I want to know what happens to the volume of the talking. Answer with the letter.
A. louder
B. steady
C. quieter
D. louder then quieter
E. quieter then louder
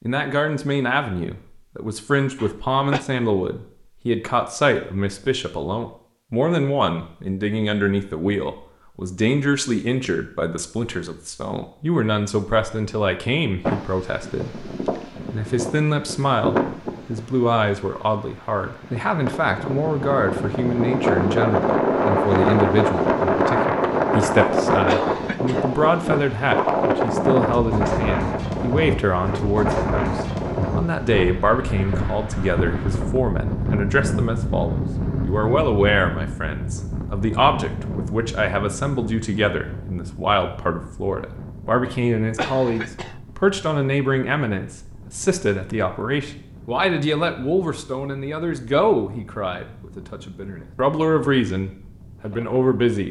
B.